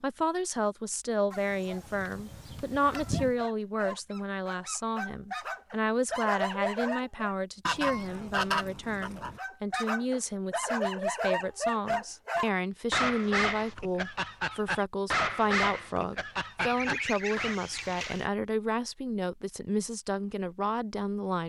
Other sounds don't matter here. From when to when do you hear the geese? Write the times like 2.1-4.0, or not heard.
1.3-3.4, 7.7-9.4, 16.6-18.2.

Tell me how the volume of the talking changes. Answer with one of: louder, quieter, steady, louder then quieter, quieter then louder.
steady.